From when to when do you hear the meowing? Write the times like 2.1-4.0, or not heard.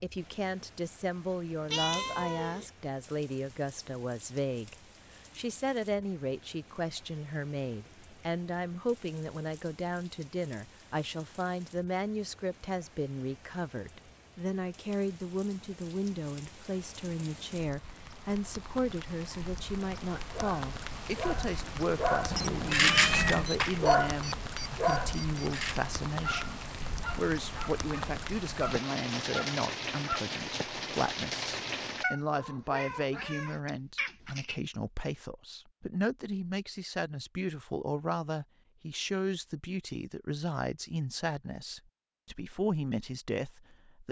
1.7-2.6, 22.3-23.4, 32.0-34.6.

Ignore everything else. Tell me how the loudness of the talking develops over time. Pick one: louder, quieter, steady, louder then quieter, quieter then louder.
steady.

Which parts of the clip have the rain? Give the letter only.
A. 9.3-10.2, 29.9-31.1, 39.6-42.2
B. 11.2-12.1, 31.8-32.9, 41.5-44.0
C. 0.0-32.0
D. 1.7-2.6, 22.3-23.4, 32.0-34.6
C.